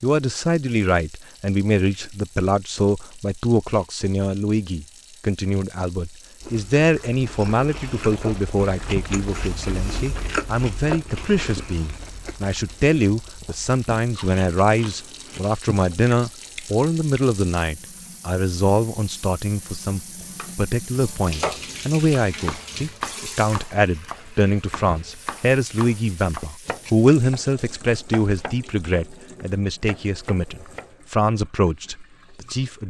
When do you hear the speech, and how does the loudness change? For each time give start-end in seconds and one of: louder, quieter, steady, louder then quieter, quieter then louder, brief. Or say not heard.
0.0-32.8 steady.